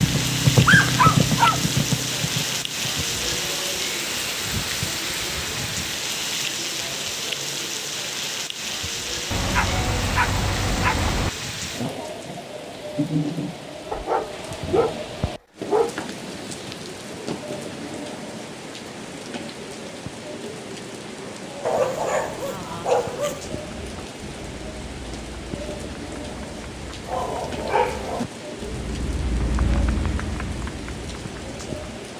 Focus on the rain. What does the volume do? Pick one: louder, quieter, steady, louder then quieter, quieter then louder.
quieter.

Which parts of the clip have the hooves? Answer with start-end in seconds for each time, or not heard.
0.0-3.6, 23.6-31.9.